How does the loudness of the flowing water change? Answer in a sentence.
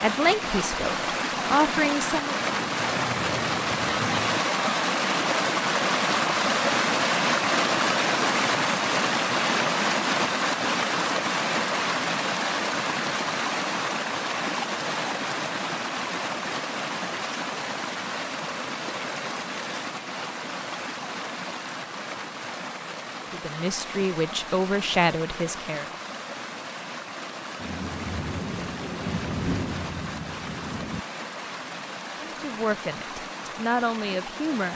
The loudness of the flowing water goes down.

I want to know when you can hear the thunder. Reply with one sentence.
The thunder can be heard from 2.4 to 4.4 s and from 27.6 to 31.1 s.